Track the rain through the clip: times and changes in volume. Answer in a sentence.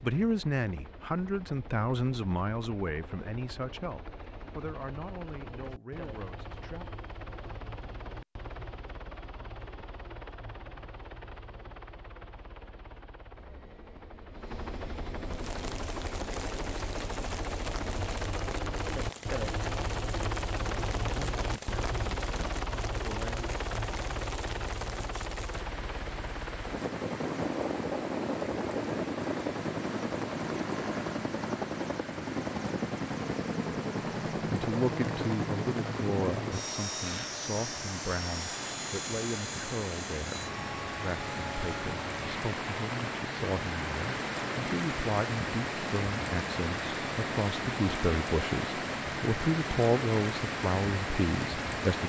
You can hear the rain from 15.2 to 52.0 s, getting louder.